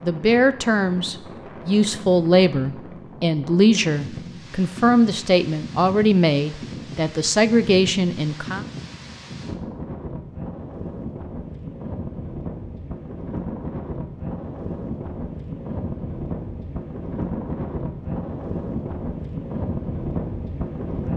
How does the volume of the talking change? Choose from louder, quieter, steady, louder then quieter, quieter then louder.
steady.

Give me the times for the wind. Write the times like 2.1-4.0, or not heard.
0.0-21.1.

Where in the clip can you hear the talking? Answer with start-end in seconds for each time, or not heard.
0.0-8.7.